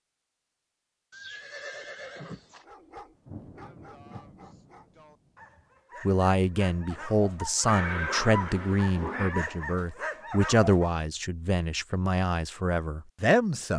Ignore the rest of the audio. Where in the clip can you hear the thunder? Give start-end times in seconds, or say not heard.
3.1-5.7.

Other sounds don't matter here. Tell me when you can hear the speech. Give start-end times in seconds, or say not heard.
6.0-13.7.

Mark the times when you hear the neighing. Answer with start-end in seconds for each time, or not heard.
1.1-2.6, 7.7-9.4.